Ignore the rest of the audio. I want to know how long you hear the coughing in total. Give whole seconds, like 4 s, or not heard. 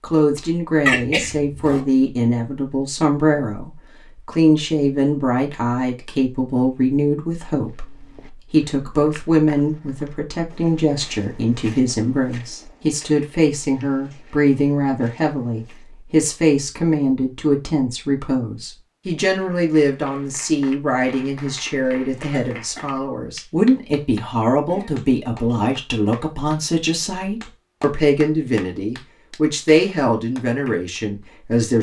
2 s.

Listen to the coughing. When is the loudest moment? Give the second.
1 s.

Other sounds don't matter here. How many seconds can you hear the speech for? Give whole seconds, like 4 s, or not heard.
32 s.